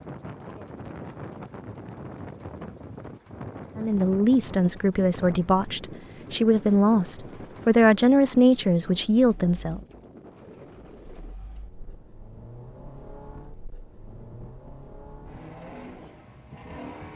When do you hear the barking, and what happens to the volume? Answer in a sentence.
You can't hear the barking here.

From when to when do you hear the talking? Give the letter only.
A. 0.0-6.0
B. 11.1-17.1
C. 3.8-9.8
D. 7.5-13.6
C.